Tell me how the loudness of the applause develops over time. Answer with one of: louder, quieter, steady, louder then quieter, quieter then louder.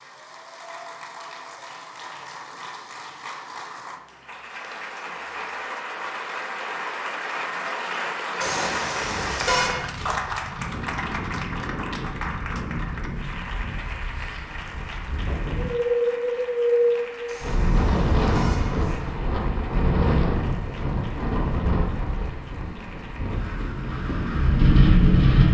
louder then quieter.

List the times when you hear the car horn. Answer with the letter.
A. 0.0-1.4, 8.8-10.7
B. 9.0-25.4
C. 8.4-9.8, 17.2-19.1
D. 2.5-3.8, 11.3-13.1
C.